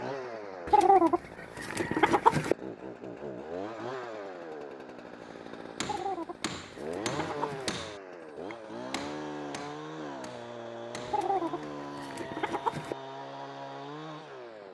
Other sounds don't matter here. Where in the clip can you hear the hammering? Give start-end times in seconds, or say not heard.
5.2-11.7.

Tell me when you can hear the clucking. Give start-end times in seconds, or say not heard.
0.7-2.5, 5.8-7.7, 11.1-12.9.